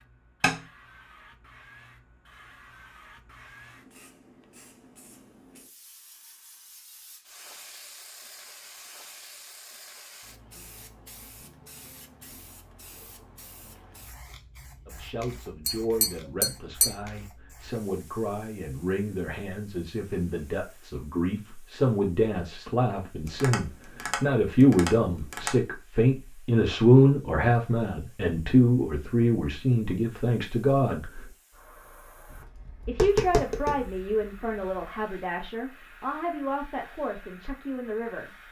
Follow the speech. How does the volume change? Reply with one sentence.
The loudness of the speech goes up, then down.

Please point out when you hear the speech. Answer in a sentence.
The speech can be heard from 14.8 to 31.3 s and from 32.9 to 38.3 s.